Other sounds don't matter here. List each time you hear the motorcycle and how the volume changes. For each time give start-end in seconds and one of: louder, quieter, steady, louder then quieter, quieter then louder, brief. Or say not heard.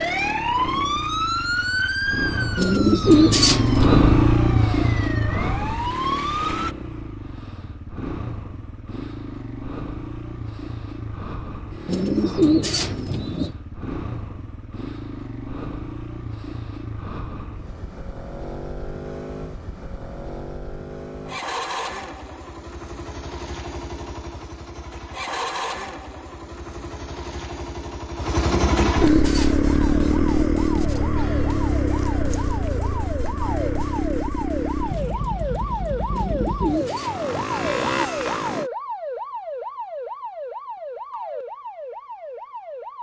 0.0-38.7 quieter then louder.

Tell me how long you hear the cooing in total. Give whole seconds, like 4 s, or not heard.
7 s.